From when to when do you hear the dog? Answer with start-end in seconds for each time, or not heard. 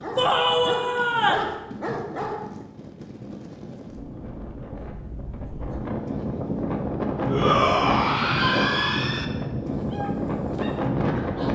0.0-2.6, 9.7-11.5.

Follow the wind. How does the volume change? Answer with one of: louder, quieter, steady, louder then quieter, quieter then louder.
louder.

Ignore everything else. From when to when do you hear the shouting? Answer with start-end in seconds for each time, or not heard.
0.1-1.5, 7.2-9.2.